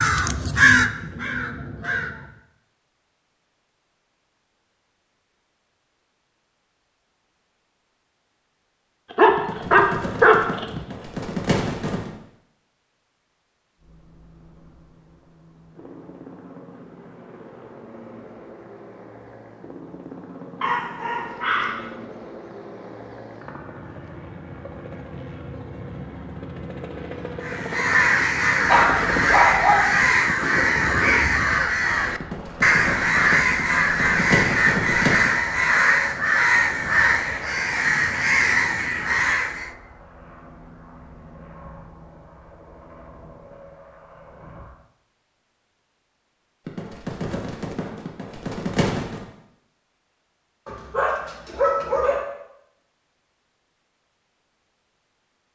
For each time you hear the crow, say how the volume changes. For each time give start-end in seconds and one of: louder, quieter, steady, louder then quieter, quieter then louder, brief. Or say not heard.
0.0-2.4 brief
27.4-39.7 steady.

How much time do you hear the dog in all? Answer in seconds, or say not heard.
6 s.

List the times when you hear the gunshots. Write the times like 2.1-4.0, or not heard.
9.3-12.1, 32.2-35.4, 46.6-49.2.